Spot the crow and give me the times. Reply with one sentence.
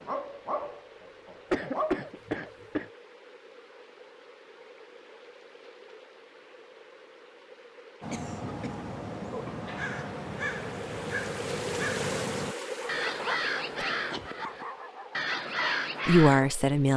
The crow can be heard from 8.0 to 16.4 s.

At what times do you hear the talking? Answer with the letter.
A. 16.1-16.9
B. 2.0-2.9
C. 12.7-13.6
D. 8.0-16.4
A.